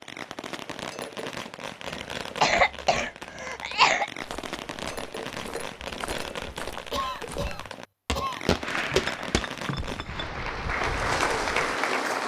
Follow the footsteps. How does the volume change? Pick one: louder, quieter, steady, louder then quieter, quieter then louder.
louder then quieter.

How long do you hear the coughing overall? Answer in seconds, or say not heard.
4 s.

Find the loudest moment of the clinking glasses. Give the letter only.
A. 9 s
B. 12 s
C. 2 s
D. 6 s
A.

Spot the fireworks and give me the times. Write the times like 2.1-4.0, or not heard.
0.0-10.1.